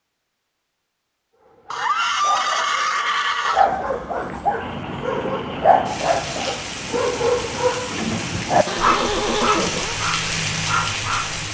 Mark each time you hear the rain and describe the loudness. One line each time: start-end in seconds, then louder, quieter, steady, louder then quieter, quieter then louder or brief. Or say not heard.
4.4-11.5 louder.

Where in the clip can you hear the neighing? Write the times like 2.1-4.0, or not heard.
1.7-3.7, 8.7-9.9.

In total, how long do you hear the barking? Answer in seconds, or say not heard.
10 s.